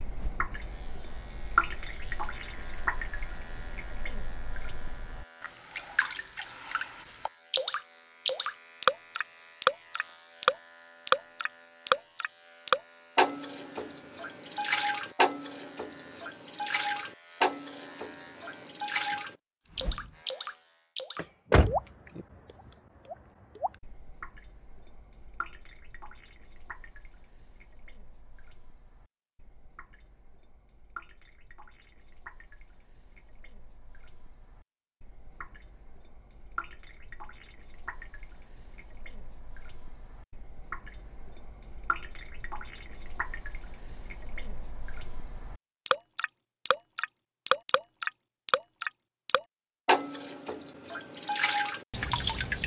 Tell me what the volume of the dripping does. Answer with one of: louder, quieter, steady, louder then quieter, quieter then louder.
quieter then louder.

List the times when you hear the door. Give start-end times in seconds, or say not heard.
21.1-22.2.